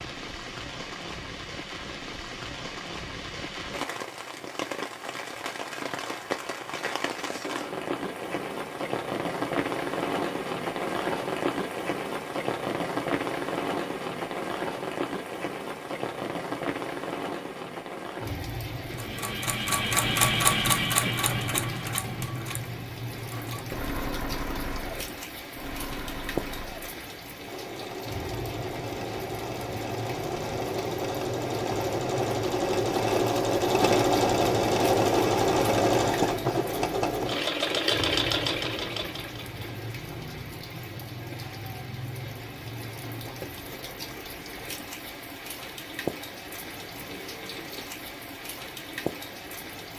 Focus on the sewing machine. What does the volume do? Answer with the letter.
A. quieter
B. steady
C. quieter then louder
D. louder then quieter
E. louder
C.